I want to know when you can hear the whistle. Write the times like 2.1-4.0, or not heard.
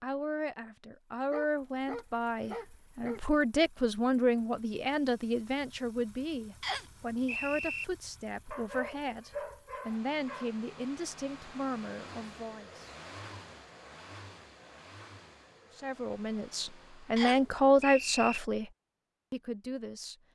6.6-7.8, 17.1-18.4.